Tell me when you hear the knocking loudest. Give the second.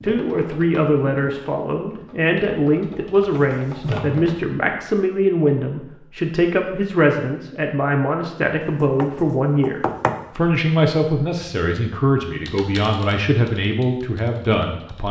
10 s.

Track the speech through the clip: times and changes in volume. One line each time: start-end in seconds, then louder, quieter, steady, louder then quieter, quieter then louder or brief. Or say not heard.
0.0-15.0 steady.